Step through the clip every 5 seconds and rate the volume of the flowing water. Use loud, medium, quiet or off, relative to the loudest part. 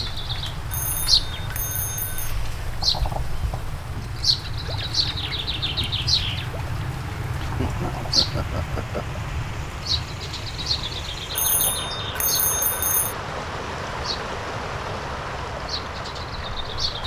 medium, medium, loud, loud.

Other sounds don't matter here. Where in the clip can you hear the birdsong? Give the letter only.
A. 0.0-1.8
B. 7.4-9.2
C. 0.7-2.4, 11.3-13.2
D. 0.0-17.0
D.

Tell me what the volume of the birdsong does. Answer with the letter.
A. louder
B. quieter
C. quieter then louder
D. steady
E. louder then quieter
B.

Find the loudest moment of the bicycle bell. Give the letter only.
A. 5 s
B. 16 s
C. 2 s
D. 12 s
D.